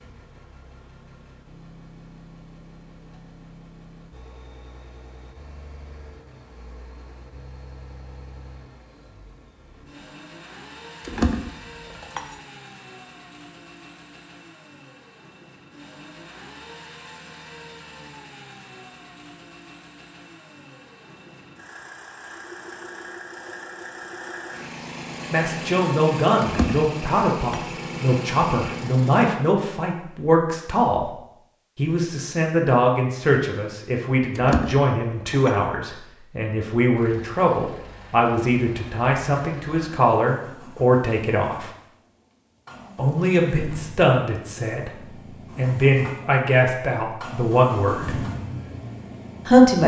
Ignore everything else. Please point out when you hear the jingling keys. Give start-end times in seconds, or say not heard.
11.0-12.4, 26.4-27.8, 34.4-35.5.